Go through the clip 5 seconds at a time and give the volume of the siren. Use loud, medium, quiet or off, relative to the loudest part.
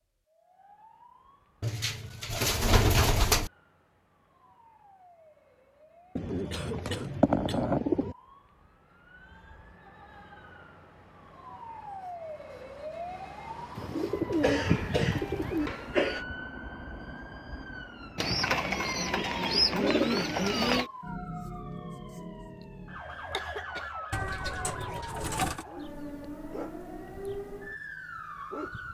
quiet, quiet, loud, loud, loud, loud.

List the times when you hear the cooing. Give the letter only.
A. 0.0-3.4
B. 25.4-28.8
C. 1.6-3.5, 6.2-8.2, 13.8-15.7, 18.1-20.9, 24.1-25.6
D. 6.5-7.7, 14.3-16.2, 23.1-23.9
C.